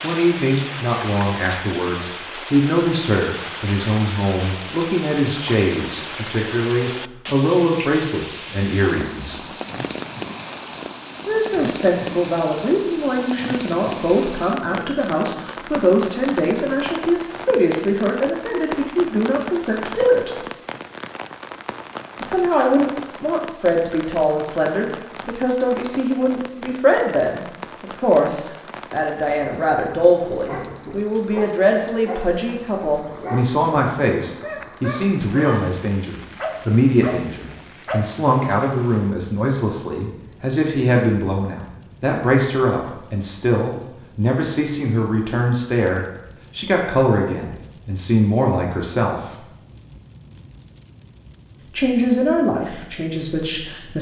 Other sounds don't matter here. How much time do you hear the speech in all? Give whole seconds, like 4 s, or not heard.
48 s.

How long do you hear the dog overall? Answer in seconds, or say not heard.
8 s.